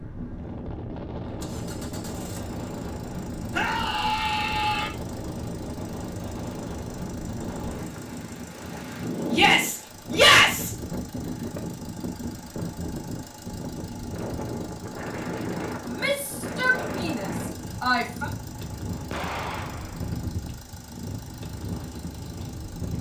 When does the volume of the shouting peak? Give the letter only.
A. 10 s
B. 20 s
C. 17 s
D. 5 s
A.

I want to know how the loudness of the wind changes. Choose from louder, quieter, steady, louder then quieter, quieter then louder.
steady.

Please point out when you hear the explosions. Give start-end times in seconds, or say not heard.
19.1-20.2.